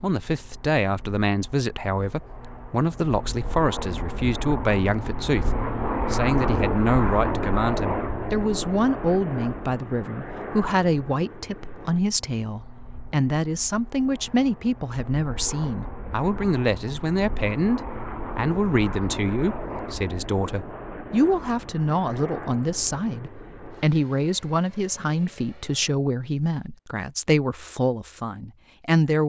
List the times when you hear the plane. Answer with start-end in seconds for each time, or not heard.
0.0-25.9.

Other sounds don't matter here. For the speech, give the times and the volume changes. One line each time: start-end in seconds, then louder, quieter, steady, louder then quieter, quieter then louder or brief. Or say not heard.
0.0-29.2 steady.